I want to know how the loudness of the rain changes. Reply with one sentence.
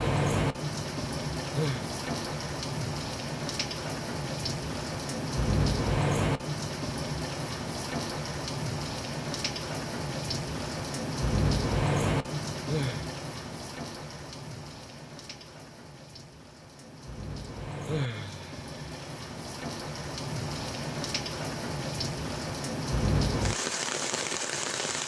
The loudness of the rain goes down, then up.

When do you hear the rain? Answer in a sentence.
The rain can be heard from 0.0 to 25.0 s.